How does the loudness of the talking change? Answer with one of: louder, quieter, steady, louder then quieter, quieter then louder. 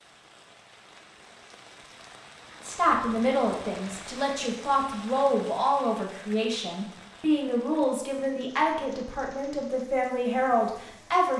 steady.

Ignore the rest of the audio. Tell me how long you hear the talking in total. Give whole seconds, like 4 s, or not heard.
9 s.